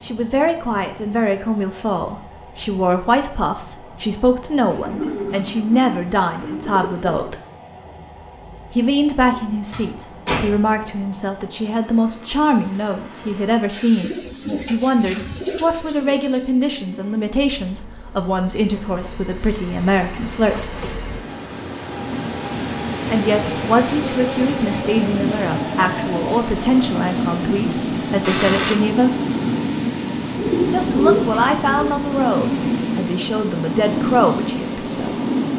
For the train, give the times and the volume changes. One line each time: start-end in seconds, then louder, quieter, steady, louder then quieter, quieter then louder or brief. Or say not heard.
0.0-35.5 louder.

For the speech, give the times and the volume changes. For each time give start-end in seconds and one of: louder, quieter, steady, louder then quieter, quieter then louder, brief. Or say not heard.
0.0-7.4 steady
8.7-20.8 steady
23.1-29.1 steady
30.7-35.1 quieter then louder.